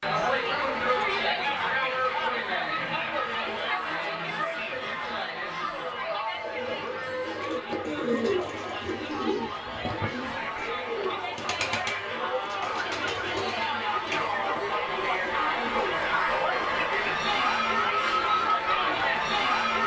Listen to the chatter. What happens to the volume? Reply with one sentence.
The volume of the chatter goes down, then up.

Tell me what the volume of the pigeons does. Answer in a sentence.
The volume of the pigeons goes down.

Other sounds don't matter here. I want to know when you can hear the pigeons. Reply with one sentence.
You can hear the pigeons from 6.3 to 16.1 s.